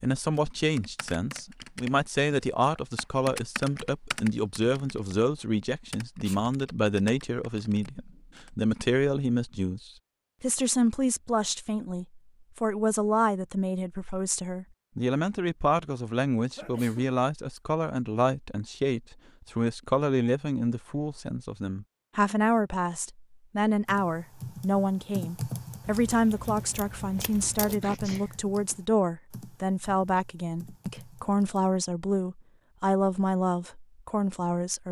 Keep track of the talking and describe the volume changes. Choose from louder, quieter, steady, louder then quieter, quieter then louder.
steady.